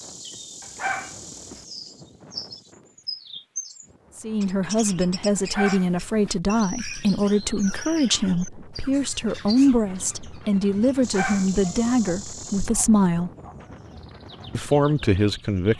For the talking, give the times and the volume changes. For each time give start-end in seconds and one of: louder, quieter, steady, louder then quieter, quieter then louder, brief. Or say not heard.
4.2-13.3 steady
14.5-15.7 brief.